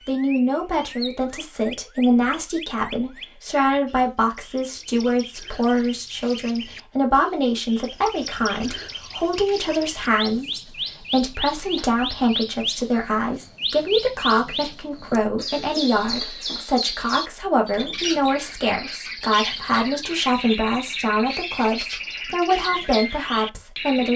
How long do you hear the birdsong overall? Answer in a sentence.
The birdsong can be heard for 24 seconds in total.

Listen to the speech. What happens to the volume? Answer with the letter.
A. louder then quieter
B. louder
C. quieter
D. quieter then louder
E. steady
E.